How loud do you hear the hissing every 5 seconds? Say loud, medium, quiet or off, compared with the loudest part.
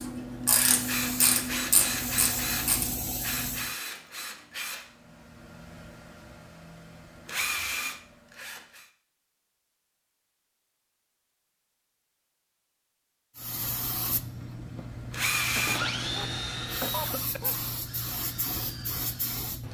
loud, off, loud, loud.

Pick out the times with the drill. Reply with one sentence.
The drill can be heard from 0.0 to 8.9 s and from 14.1 to 19.6 s.